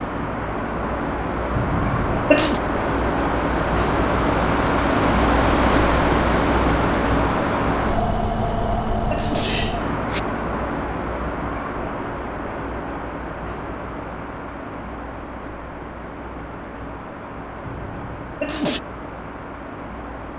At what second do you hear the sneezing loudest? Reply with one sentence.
The volume of the sneezing peaks at 2 seconds.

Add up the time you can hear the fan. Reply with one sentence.
The fan can be heard for 20 seconds in total.